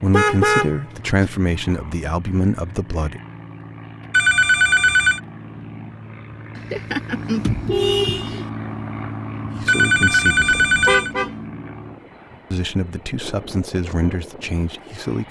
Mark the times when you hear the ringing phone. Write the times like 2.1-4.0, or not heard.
4.1-5.2, 9.7-11.1.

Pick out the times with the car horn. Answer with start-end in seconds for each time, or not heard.
0.1-1.2, 6.5-8.5, 10.3-11.3.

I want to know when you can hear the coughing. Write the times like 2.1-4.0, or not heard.
not heard.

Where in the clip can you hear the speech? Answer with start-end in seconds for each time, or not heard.
0.0-3.2, 9.6-10.7, 12.5-15.2.